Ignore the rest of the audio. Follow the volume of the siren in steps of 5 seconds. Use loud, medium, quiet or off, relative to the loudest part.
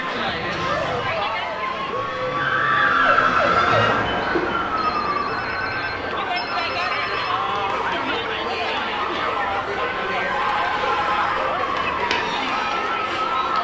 loud, medium, medium.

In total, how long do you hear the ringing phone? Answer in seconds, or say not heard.
5 s.